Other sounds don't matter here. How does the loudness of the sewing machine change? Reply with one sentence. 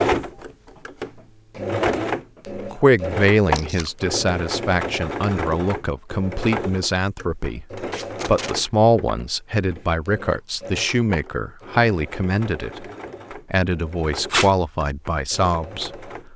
The volume of the sewing machine goes down.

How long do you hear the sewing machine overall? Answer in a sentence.
The sewing machine can be heard for 16 seconds in total.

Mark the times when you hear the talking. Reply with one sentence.
The talking can be heard from 2.5 to 12.8 s and from 13.5 to 16.1 s.